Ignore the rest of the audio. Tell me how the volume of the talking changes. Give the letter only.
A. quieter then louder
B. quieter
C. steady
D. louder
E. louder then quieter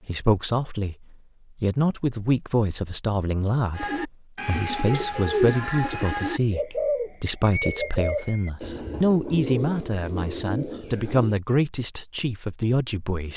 C.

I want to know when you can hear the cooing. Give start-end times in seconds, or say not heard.
3.8-11.3.